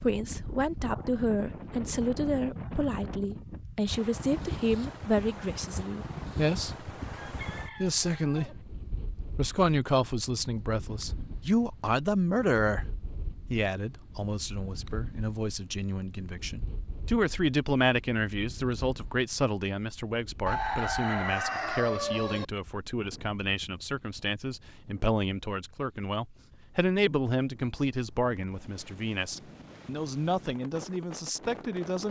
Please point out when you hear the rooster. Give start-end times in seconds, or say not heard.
7.1-8.7, 20.4-22.4.